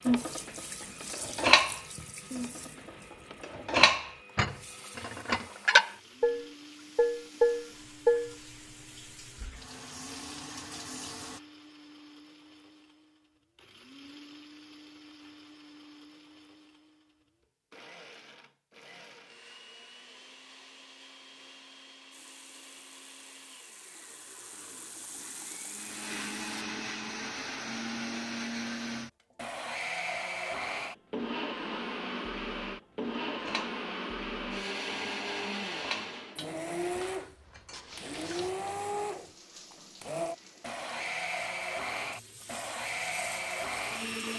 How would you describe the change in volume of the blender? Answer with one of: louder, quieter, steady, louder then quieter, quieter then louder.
louder.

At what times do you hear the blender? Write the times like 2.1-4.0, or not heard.
0.0-44.3.